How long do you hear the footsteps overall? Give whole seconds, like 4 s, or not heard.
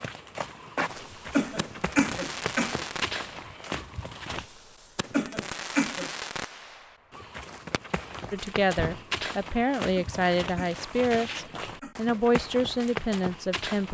11 s.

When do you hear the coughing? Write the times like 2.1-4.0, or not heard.
1.3-2.9, 5.1-6.1, 9.9-11.9.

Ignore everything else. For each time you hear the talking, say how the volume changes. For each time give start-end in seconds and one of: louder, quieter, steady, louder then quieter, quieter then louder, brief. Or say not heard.
8.3-13.9 steady.